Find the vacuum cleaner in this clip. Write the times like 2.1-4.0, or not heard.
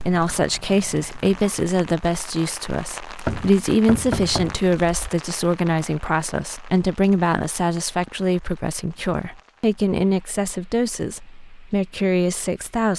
not heard.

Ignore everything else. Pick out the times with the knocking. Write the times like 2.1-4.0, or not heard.
3.1-5.1.